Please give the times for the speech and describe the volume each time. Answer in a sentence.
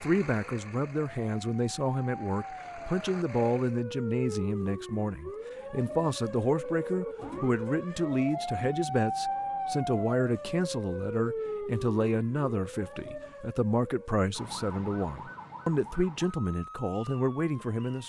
The speech can be heard from 0.0 to 18.0 s, at a steady volume.